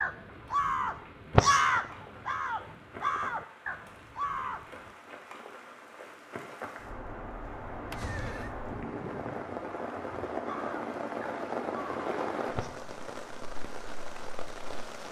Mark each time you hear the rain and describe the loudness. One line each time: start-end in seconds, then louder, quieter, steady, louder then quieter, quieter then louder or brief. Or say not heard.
0.0-15.0 louder.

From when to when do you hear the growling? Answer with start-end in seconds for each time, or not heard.
not heard.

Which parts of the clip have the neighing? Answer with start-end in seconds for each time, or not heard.
7.9-8.6.